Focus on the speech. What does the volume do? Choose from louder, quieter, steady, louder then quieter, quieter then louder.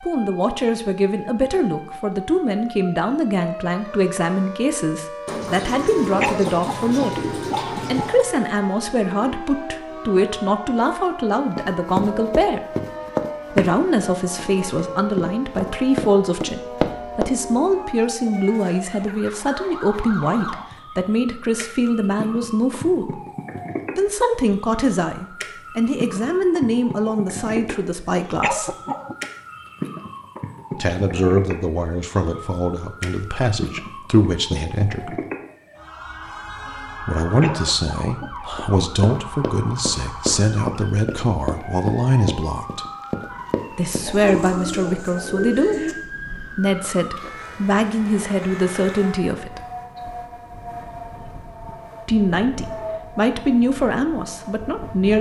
steady.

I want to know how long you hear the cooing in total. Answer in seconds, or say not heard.
5 s.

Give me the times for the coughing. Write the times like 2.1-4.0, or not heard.
6.2-8.2, 28.4-29.2, 37.4-38.3.